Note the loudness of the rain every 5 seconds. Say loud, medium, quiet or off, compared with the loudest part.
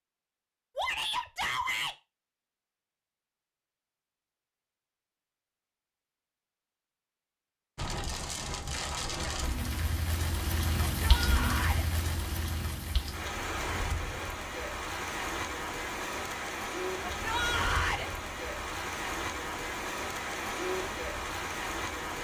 off, loud, loud, loud, loud.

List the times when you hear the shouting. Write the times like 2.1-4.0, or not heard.
0.8-1.9, 11.0-11.8, 17.1-18.1.